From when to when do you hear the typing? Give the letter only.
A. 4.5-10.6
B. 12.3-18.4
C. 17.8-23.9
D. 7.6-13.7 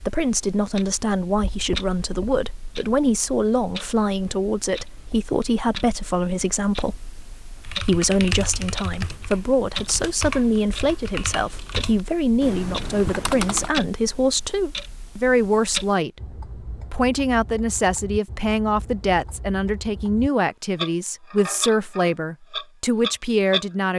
D.